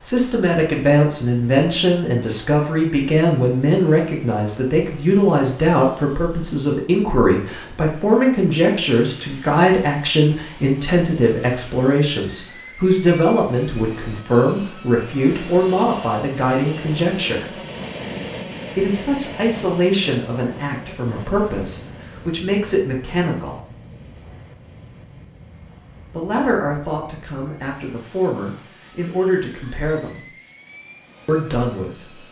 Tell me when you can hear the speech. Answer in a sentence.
The speech can be heard from 0.0 to 17.5 s, from 18.8 to 23.6 s, from 26.1 to 30.2 s and from 31.2 to 32.2 s.